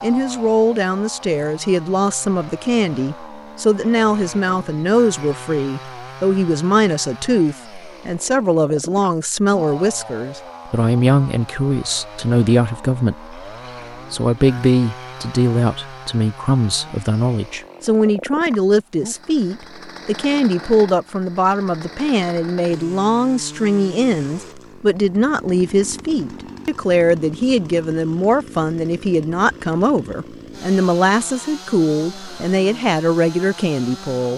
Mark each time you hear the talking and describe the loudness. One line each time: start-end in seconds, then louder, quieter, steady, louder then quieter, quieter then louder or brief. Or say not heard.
0.0-13.3 steady
14.1-34.3 steady.